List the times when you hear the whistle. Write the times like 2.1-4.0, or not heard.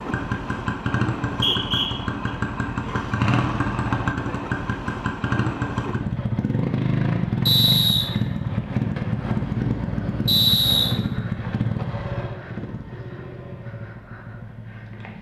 1.2-2.3, 7.5-8.1, 10.2-10.9.